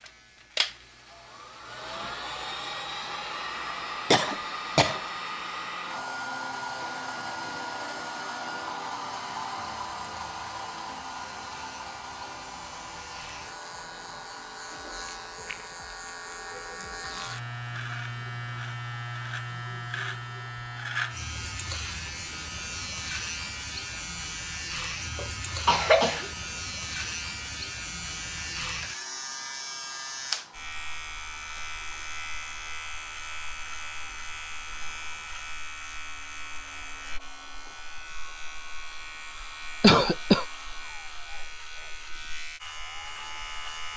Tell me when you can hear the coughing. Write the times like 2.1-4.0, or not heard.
4.1-5.0, 25.1-26.3, 39.8-40.5.